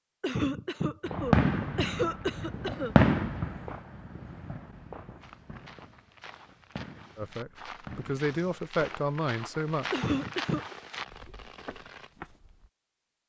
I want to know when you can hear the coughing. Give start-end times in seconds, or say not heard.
0.2-3.0, 9.9-10.7.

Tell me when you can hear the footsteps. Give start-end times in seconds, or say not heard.
5.2-12.7.